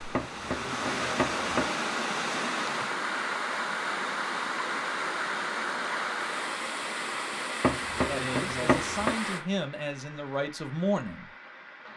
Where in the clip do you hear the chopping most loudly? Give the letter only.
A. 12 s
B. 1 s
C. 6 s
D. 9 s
D.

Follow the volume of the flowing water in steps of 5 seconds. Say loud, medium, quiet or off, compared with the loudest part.
loud, loud, quiet.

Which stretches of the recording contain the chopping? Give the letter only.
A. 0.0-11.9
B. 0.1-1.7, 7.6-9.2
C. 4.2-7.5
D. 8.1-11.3
B.